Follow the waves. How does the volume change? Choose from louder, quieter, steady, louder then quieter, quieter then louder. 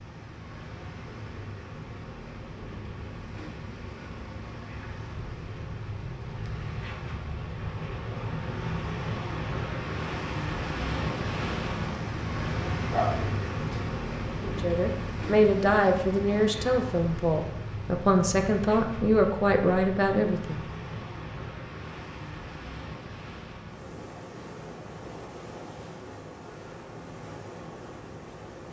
louder then quieter.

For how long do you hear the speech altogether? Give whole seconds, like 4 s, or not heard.
6 s.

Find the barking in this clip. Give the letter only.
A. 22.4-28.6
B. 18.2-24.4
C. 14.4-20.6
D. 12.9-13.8
D.